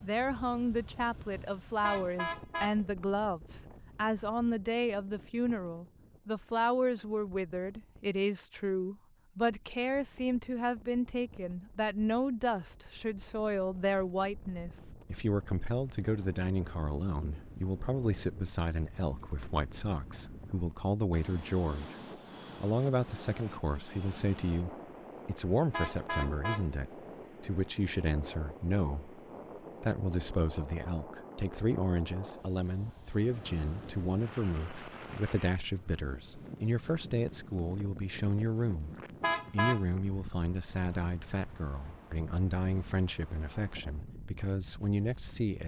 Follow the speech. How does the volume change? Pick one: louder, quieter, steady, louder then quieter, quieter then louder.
steady.